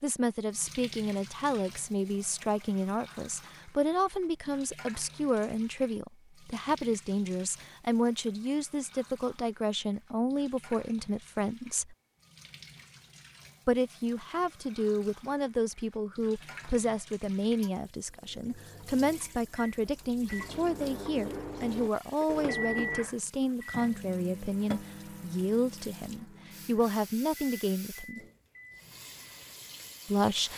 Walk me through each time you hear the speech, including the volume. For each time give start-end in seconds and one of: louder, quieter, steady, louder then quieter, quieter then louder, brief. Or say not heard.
0.0-11.9 steady
13.7-28.2 steady
30.1-30.5 brief.